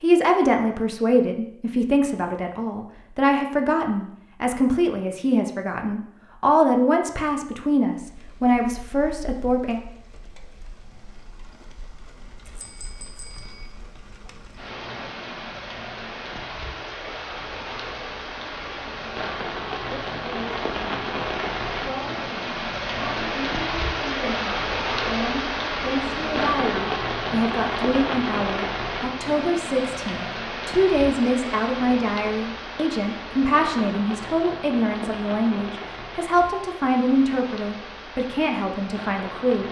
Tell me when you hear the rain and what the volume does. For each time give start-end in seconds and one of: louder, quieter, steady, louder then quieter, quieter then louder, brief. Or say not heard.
8.0-39.6 louder then quieter.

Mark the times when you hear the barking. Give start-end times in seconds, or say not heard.
not heard.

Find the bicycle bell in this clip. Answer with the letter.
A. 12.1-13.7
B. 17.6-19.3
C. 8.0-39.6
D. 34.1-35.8
A.